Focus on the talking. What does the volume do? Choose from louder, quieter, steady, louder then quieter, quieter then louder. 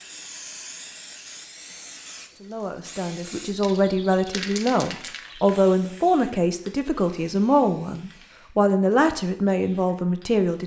steady.